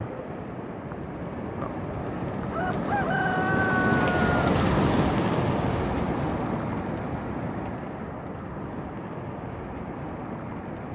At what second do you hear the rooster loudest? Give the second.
4 s.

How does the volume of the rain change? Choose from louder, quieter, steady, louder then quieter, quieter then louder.
louder then quieter.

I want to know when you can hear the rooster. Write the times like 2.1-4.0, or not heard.
2.5-4.2.